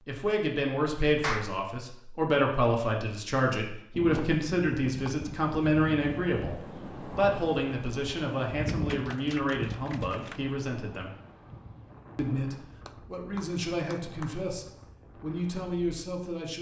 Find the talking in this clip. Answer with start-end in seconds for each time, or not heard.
0.1-11.1, 12.2-16.5.